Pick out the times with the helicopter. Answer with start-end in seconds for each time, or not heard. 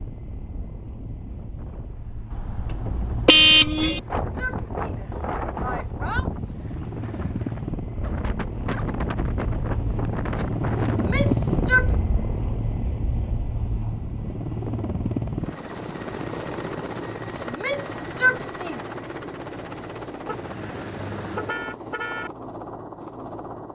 0.0-23.7.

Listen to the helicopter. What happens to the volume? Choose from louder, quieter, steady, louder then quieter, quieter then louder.
louder then quieter.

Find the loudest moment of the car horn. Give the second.
3 s.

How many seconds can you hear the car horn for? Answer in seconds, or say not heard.
4 s.